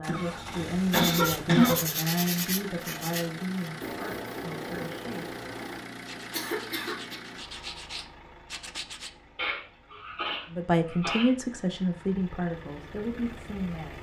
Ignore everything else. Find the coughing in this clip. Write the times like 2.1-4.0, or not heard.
0.1-1.9, 6.3-7.2, 9.3-11.3.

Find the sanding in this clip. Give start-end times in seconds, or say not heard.
0.9-9.1.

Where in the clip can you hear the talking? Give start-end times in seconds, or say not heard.
0.0-5.3, 10.5-13.9.